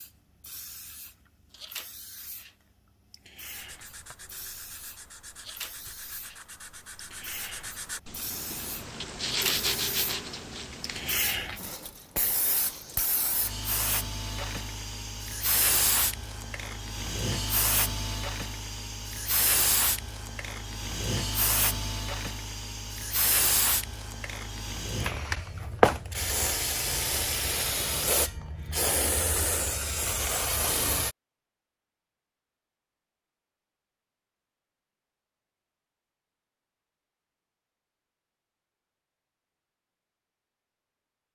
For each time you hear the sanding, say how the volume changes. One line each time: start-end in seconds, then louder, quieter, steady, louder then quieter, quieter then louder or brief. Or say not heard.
3.4-11.3 louder.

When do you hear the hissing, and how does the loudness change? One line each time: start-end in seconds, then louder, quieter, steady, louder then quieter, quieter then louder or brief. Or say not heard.
0.0-31.1 louder.